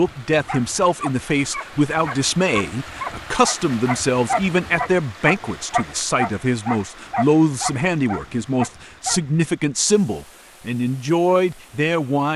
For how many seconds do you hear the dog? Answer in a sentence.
The dog can be heard for 9 seconds in total.